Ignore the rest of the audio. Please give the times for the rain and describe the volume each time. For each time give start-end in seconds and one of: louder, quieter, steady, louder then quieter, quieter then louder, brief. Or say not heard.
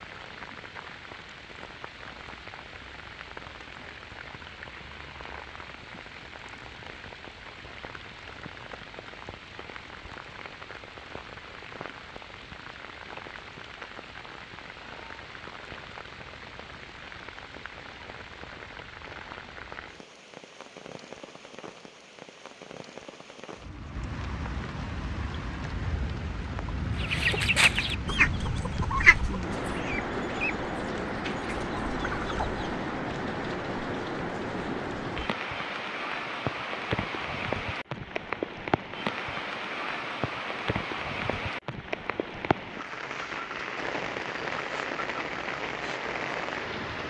0.0-47.0 louder.